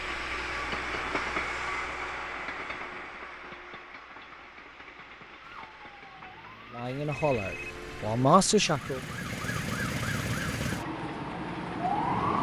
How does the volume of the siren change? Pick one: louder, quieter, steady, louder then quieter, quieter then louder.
louder.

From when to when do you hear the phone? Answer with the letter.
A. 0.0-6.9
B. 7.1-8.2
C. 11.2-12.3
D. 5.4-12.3
B.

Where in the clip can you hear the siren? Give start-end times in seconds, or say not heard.
5.4-12.3.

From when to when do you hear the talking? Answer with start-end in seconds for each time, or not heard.
6.7-9.0.